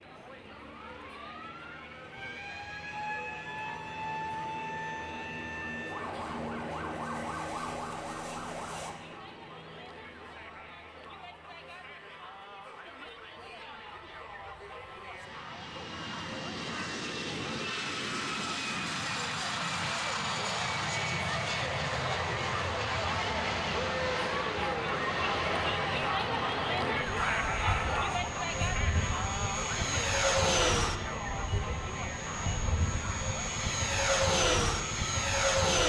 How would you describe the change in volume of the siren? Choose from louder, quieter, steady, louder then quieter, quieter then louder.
louder.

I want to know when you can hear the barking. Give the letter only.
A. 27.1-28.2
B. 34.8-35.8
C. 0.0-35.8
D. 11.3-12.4
A.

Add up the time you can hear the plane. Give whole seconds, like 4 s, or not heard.
36 s.